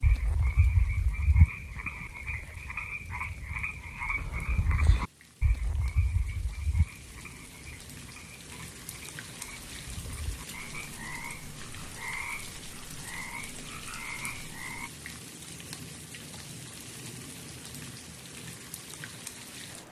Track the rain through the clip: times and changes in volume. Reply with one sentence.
You can hear the rain from 0.0 to 19.8 s, getting louder.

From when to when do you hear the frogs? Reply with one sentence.
You can hear the frogs from 0.0 to 14.9 s.